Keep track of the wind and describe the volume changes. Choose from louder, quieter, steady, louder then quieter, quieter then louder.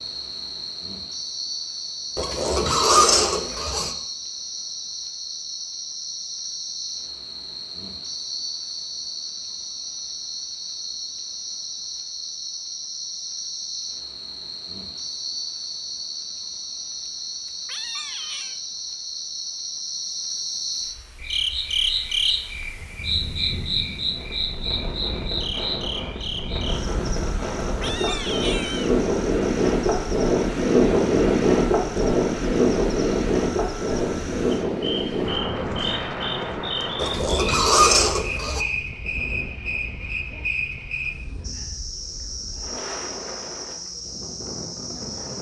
louder then quieter.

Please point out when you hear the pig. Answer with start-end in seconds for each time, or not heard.
2.1-4.0, 37.0-38.6.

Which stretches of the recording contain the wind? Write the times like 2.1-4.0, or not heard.
22.4-45.3.